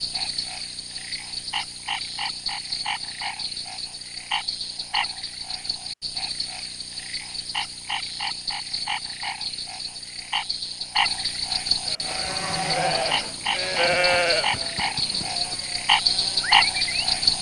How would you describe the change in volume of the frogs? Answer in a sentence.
The volume of the frogs goes up.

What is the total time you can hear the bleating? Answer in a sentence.
You can hear the bleating for 5 seconds altogether.